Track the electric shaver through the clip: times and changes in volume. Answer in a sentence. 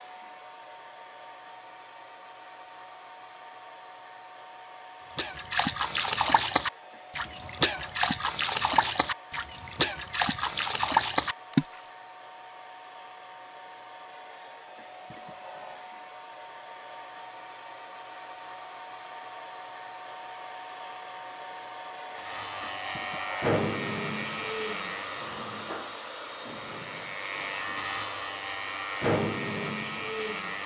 You can hear the electric shaver from 22.1 to 30.6 s, getting quieter then louder.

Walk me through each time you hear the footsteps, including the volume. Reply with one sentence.
The footsteps can't be heard in this clip.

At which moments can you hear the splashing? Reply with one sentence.
You can hear the splashing from 5.2 to 11.7 s.